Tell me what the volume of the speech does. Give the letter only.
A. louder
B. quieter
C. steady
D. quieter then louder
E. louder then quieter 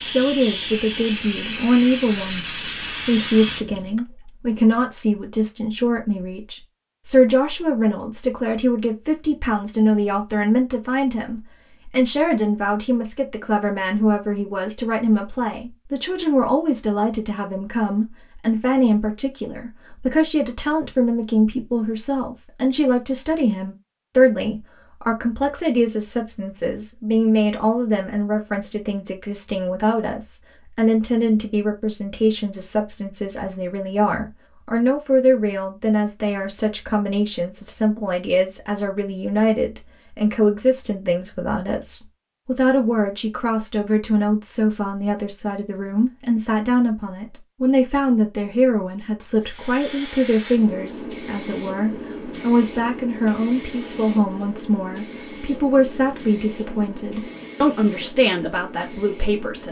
C.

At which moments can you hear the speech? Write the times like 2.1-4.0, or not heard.
0.0-59.6.